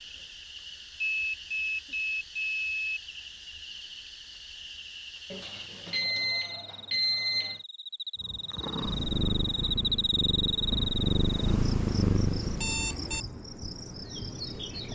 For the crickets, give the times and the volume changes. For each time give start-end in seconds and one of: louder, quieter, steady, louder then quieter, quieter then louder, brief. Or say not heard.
0.0-14.9 louder then quieter.